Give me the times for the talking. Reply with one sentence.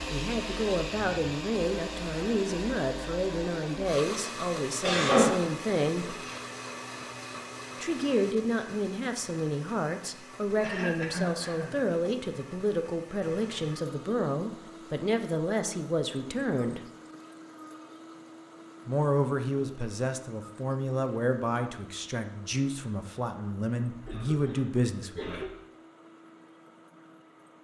The talking can be heard from 0.1 to 6.2 s, from 7.8 to 16.8 s and from 18.9 to 25.4 s.